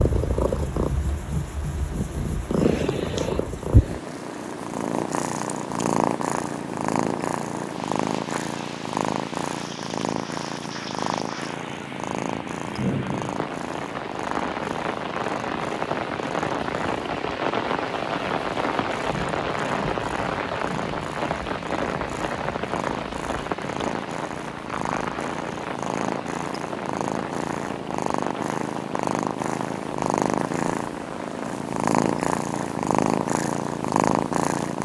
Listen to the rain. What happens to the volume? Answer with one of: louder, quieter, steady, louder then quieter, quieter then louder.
louder then quieter.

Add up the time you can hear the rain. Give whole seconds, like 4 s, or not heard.
35 s.